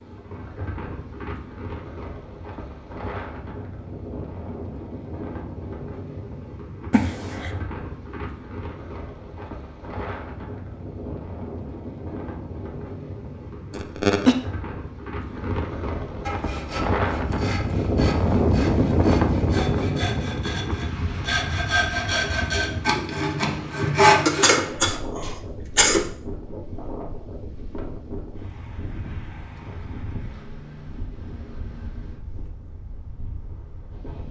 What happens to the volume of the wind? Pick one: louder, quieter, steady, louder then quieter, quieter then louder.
louder then quieter.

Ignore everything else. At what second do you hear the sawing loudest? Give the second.
24 s.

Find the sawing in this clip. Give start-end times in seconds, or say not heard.
16.2-24.6.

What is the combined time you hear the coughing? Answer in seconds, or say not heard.
3 s.